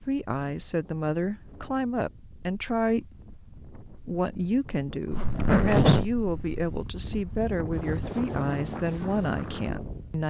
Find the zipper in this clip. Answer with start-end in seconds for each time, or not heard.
5.1-6.8.